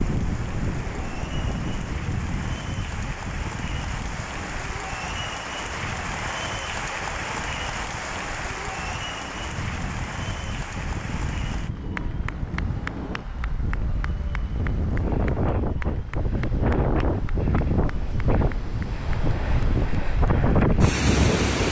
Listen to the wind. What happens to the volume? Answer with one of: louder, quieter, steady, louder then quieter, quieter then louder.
quieter then louder.